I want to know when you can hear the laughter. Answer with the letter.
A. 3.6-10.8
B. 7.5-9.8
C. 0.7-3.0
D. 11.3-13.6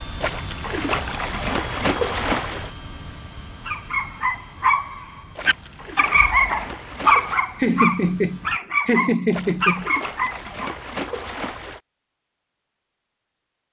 B.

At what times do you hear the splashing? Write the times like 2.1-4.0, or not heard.
0.2-2.7, 5.3-7.5, 9.3-11.8.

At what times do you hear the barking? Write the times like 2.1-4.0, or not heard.
3.6-10.8.